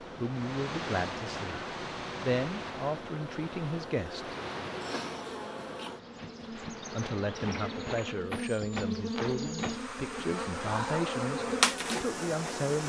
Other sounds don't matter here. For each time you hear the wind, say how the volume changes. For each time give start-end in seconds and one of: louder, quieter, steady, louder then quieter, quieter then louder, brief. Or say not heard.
0.0-8.0 quieter.